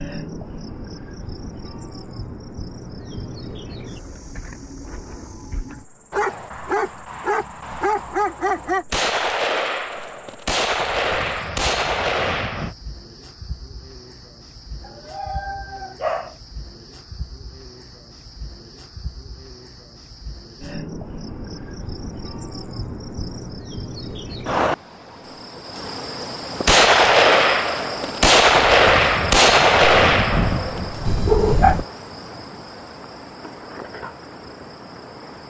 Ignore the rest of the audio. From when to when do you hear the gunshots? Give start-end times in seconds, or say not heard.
8.9-12.8, 26.6-31.1.